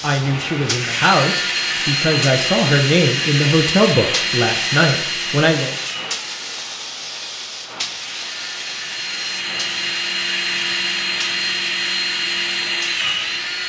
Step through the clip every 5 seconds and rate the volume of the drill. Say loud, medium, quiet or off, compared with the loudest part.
loud, medium, loud.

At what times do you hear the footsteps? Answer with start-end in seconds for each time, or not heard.
not heard.